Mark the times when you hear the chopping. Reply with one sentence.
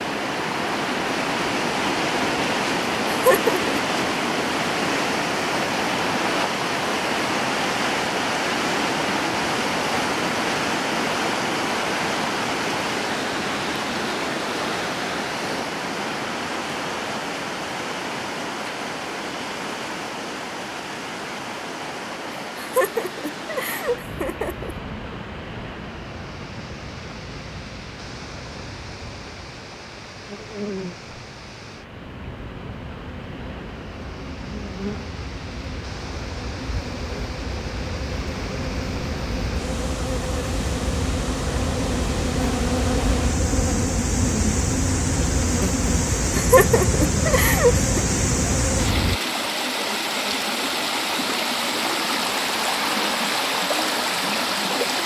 You can't hear the chopping here.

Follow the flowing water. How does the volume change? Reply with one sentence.
The volume of the flowing water goes down, then up.